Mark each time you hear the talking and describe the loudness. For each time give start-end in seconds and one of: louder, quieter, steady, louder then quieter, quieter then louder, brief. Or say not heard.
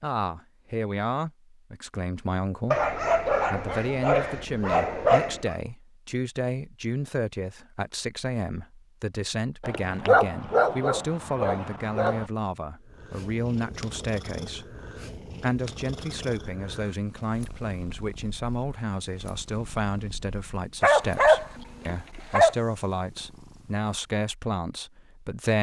0.0-25.5 steady.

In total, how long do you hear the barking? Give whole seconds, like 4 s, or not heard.
7 s.